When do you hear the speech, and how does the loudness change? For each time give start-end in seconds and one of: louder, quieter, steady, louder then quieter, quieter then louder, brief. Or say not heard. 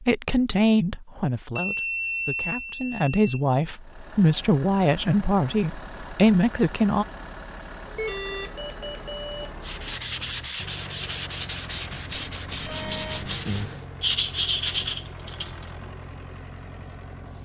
0.0-7.0 quieter then louder.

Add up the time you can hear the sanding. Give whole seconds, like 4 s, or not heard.
6 s.